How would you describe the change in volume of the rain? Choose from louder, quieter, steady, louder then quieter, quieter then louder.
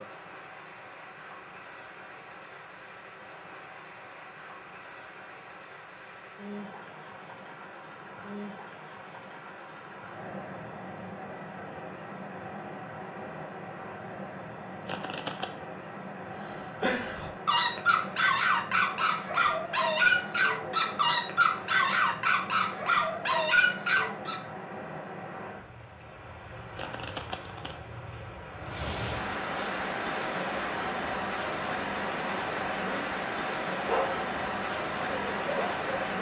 louder.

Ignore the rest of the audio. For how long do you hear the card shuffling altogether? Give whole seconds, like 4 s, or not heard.
2 s.